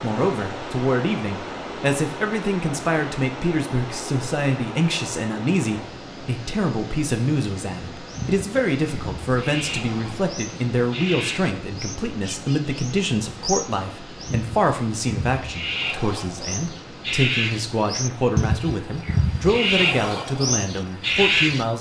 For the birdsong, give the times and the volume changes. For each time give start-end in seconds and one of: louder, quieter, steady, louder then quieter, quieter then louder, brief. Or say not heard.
8.1-21.7 louder.